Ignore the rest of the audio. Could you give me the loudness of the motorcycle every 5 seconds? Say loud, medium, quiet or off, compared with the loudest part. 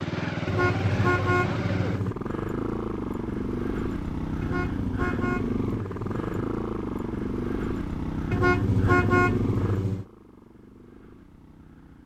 loud, loud, quiet.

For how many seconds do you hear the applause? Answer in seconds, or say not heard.
not heard.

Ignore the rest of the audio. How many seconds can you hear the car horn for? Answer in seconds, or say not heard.
5 s.